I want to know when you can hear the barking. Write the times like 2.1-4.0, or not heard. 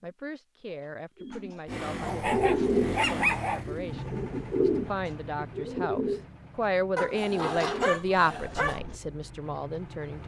1.9-3.6, 7.0-8.8.